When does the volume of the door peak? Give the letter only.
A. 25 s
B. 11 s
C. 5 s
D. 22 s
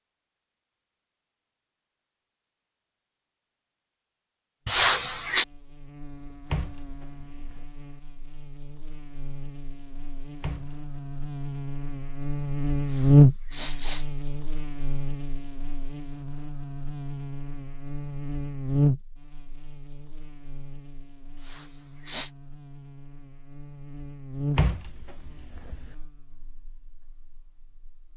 A.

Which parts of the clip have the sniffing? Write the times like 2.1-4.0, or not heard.
4.7-5.5, 12.8-14.1, 21.4-22.3.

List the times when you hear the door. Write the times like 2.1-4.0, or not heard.
6.5-7.6, 10.4-10.9, 24.6-25.9.